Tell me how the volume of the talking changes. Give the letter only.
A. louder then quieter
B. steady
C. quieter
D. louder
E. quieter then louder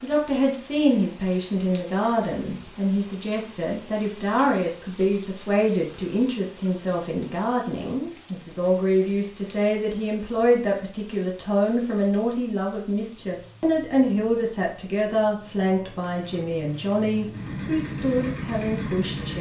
B.